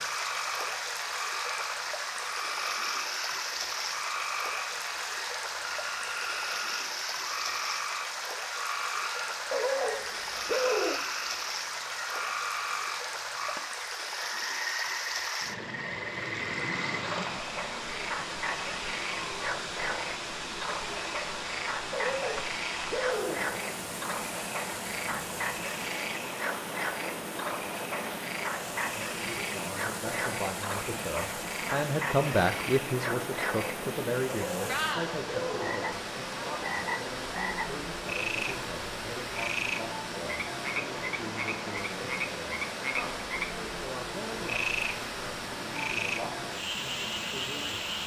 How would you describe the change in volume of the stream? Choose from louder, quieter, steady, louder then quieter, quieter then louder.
steady.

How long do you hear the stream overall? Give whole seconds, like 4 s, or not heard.
48 s.